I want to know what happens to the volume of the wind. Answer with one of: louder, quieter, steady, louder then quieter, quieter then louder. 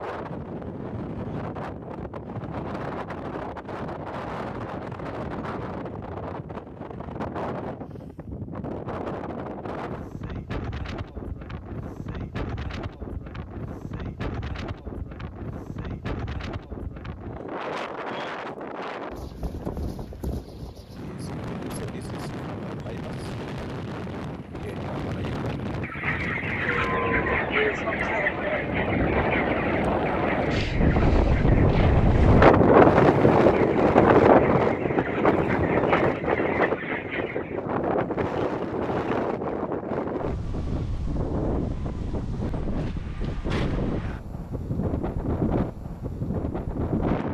louder then quieter.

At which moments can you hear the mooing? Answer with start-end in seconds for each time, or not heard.
26.6-28.6.